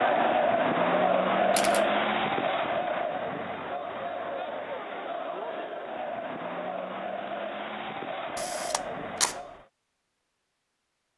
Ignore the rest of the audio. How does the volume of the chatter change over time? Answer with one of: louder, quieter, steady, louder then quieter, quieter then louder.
quieter.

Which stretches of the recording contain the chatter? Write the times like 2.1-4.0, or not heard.
0.0-9.7.